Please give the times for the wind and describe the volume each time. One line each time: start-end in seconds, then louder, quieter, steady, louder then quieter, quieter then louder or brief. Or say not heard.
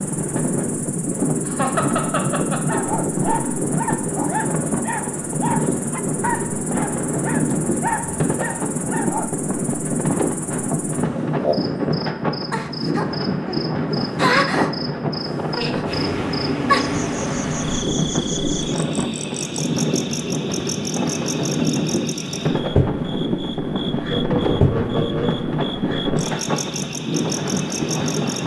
0.0-28.4 steady.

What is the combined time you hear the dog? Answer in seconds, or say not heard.
7 s.